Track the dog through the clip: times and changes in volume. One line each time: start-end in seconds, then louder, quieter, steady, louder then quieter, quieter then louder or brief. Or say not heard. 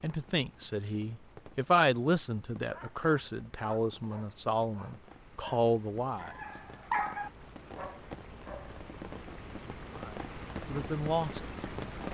2.6-8.8 louder then quieter.